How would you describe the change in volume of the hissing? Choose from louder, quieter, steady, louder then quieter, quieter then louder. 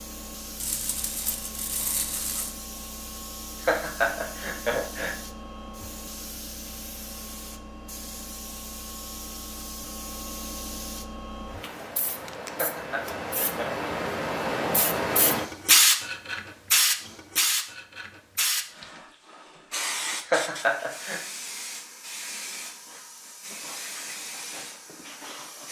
louder then quieter.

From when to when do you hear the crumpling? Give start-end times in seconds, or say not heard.
0.6-2.5.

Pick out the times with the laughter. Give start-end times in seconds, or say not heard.
3.6-5.2, 12.6-13.8, 20.2-21.2.